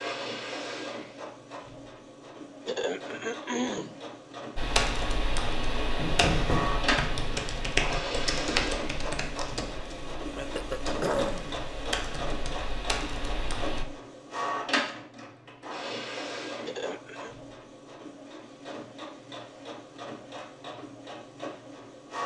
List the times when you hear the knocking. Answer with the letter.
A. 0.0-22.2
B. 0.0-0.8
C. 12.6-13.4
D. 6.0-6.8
D.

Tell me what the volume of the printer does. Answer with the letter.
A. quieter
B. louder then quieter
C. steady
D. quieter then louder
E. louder
B.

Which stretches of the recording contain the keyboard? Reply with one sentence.
The keyboard can be heard from 4.5 to 13.8 s.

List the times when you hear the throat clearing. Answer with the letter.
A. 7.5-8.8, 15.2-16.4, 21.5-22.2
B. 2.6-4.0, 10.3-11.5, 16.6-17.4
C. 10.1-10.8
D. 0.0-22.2
B.